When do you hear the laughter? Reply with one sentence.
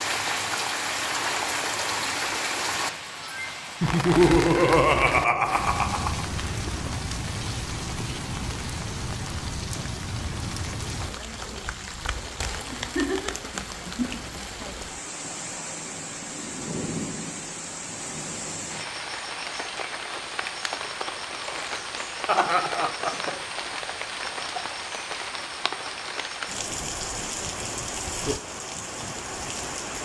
You can hear the laughter from 3.8 to 6.2 s, from 12.7 to 13.3 s and from 22.2 to 23.4 s.